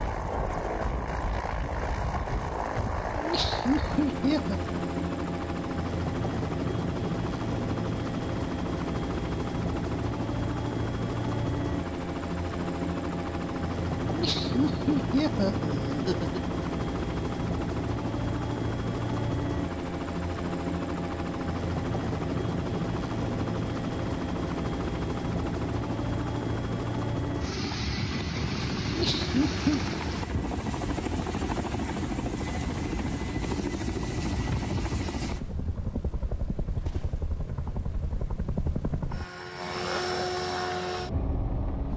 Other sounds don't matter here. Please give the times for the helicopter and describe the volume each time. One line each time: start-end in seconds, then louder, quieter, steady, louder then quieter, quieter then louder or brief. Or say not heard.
0.0-41.9 steady.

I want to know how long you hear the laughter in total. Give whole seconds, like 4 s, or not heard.
5 s.